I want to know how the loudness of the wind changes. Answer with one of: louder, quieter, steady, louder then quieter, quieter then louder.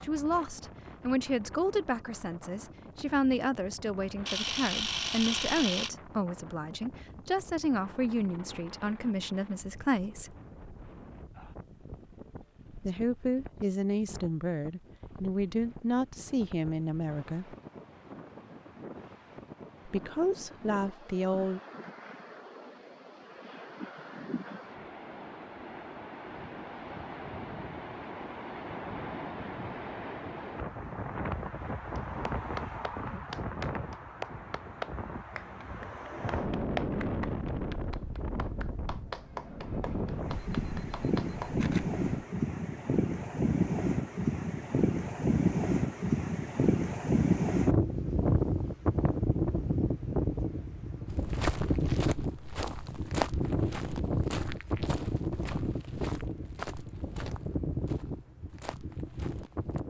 louder.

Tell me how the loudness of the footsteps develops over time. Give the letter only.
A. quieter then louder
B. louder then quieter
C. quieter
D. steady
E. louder
C.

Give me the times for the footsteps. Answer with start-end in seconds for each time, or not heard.
51.0-59.8.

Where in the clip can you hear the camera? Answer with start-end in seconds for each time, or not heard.
4.2-5.9, 40.2-42.0.